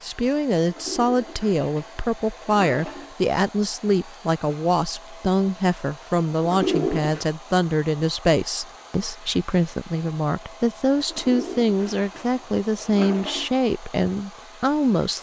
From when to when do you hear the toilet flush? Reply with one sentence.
The toilet flush can be heard from 0.7 to 3.1 s, from 6.4 to 7.2 s and from 11.1 to 13.5 s.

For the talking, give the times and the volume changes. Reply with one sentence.
The talking can be heard from 0.0 to 15.1 s, at a steady volume.